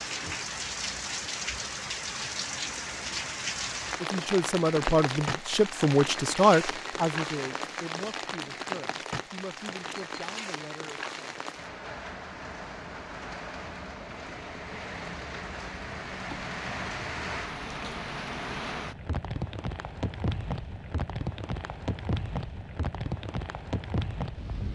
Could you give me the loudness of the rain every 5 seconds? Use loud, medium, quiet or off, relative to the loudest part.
loud, loud, medium, loud, loud.